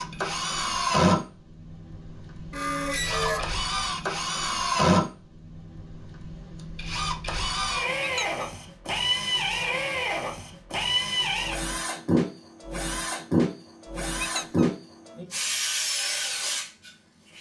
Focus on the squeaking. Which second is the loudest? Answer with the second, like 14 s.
3 s.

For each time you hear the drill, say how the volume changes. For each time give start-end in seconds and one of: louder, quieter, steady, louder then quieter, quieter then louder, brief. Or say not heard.
0.0-17.3 steady.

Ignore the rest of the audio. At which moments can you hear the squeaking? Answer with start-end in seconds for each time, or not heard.
2.5-3.5, 8.0-8.4, 14.2-14.7.